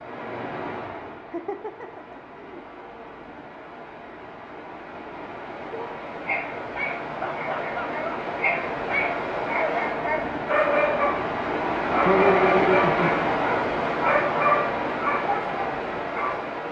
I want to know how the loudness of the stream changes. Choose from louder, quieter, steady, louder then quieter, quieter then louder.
louder.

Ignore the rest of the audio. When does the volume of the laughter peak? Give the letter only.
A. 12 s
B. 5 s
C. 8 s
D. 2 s
A.